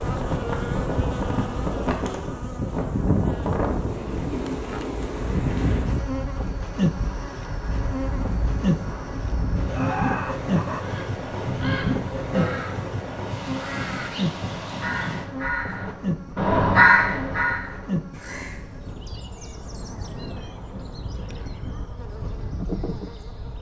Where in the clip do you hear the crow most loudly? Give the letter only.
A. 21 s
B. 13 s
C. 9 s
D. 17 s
D.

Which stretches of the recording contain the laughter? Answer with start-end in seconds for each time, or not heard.
9.7-11.0.